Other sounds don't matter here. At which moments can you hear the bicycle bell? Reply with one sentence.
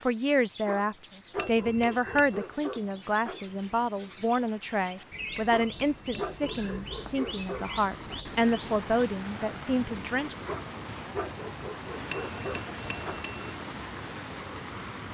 You can hear the bicycle bell from 1.4 to 2.5 s, from 5.3 to 6.7 s and from 12.1 to 13.6 s.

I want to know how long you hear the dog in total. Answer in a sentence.
The dog can be heard for 8 seconds in total.